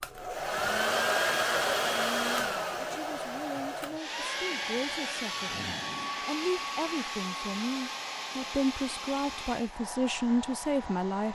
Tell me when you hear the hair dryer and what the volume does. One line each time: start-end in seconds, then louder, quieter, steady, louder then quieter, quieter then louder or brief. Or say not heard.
0.0-11.2 quieter.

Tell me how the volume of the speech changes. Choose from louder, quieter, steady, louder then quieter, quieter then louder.
louder.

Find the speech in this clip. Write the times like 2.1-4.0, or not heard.
1.9-11.2.